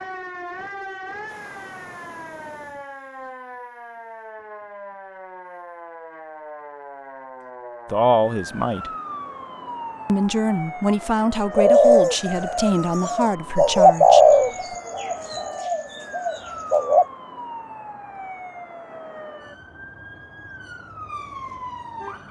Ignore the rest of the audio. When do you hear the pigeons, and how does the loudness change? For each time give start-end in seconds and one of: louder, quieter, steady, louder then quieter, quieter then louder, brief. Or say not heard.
11.6-17.1 louder then quieter.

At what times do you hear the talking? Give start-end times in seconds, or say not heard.
7.8-8.9, 10.1-14.8.